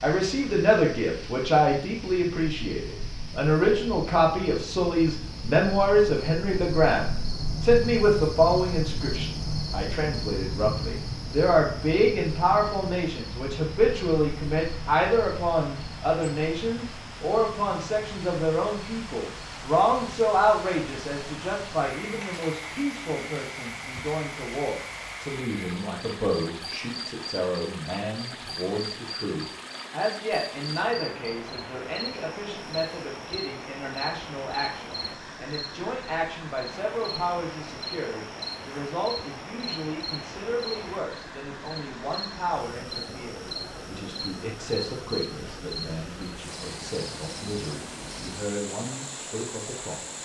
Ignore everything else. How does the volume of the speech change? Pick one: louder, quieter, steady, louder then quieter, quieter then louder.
quieter.